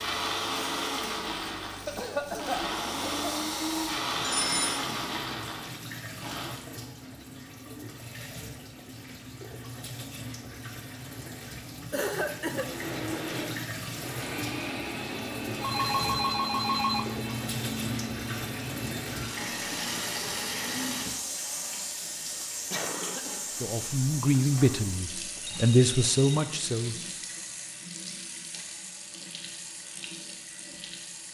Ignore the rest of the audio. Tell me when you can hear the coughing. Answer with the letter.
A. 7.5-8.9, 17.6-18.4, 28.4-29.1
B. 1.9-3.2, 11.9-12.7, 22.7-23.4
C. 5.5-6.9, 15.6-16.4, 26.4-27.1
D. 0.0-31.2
B.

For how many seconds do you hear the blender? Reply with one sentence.
The blender can be heard for 15 seconds in total.